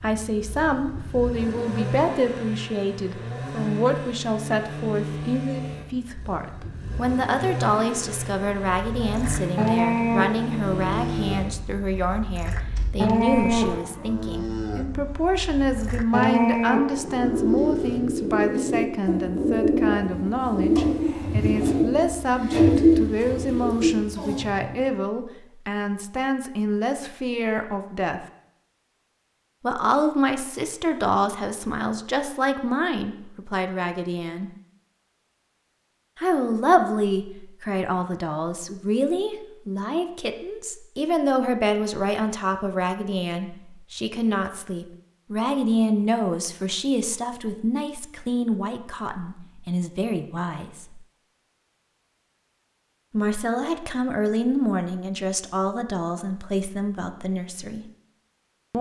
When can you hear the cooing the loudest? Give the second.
23 s.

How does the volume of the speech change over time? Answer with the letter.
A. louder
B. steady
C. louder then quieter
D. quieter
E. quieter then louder
B.